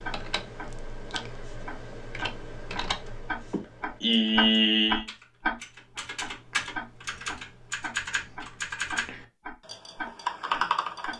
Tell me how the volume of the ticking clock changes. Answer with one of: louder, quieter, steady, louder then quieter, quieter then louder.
louder then quieter.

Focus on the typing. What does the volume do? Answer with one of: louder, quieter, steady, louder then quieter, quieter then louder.
louder.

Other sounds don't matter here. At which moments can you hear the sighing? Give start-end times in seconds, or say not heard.
3.5-5.0.